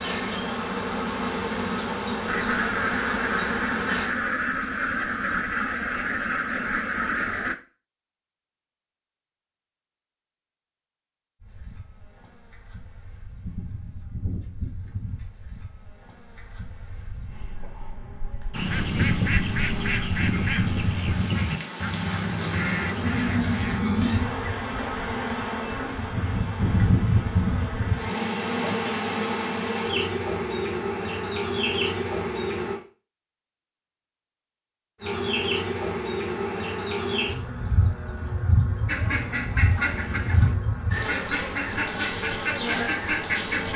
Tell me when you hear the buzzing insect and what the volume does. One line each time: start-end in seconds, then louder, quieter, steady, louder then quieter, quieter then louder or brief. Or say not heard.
0.0-4.1 steady
11.4-32.8 louder
35.0-43.7 steady.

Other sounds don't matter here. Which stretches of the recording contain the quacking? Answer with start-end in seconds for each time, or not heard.
2.2-7.5, 18.5-23.8, 38.9-43.7.